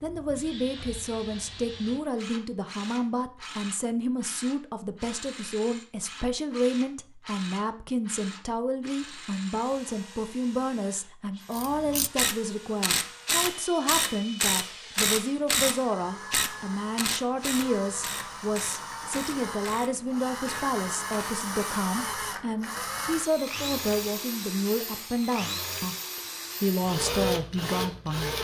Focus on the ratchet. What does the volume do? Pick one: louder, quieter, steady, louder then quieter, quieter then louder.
quieter.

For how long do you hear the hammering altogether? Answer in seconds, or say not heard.
not heard.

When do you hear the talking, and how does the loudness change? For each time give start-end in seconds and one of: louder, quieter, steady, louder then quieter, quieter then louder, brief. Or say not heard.
0.0-28.3 steady.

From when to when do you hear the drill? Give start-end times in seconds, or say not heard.
0.0-28.3.